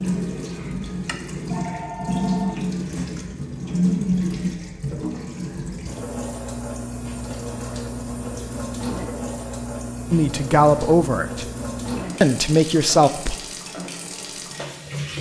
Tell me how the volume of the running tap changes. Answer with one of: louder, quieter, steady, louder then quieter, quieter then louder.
quieter.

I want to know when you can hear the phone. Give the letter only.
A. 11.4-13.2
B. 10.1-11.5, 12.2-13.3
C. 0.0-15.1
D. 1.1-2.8
D.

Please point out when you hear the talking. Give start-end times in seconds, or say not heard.
10.1-11.5, 12.2-13.3.